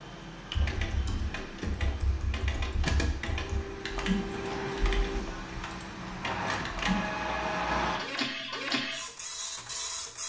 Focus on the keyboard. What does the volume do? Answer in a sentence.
The volume of the keyboard goes up, then down.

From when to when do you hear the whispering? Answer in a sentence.
The whispering can't be heard in this clip.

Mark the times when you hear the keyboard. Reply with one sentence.
You can hear the keyboard from 0.5 to 7.0 s.